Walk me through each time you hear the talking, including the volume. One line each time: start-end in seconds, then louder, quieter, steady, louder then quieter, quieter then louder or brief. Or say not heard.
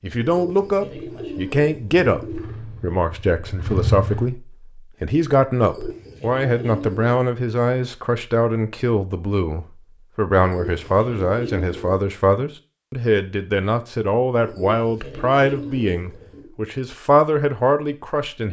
0.0-18.4 steady.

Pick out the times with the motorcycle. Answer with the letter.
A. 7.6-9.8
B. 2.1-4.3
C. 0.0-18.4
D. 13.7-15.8
B.